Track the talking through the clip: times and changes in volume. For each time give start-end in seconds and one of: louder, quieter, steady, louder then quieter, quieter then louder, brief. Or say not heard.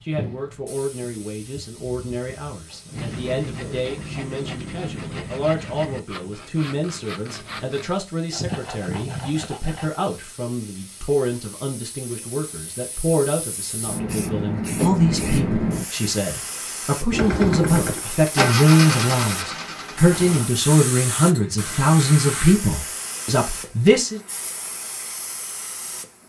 0.0-24.2 louder.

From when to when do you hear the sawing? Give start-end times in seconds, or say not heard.
2.9-9.9.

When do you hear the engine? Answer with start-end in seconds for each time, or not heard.
17.1-20.5.